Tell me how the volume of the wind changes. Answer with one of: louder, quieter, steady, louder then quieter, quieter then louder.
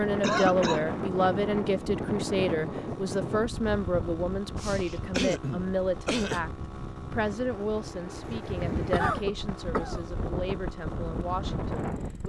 quieter then louder.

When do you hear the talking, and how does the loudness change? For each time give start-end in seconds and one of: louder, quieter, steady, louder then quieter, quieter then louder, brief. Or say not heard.
0.0-12.2 quieter.